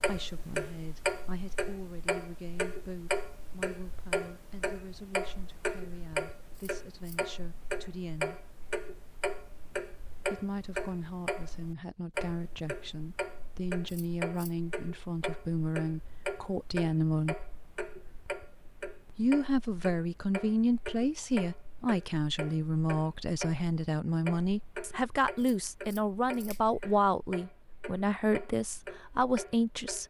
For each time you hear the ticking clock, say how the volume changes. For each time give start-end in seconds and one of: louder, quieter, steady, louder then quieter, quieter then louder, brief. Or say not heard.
0.0-30.0 quieter.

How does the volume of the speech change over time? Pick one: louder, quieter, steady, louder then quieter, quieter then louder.
louder.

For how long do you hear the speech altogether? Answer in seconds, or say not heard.
27 s.